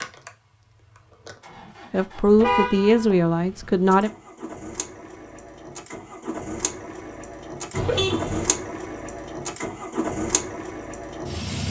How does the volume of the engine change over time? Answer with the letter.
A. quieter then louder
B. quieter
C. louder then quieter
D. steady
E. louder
E.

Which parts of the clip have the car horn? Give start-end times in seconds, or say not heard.
2.4-3.2, 7.7-8.5.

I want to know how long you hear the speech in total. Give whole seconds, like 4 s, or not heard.
2 s.